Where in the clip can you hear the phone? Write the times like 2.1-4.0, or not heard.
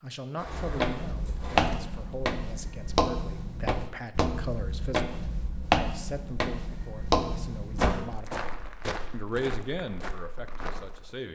not heard.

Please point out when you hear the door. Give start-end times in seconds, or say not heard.
0.3-1.8, 7.6-8.1.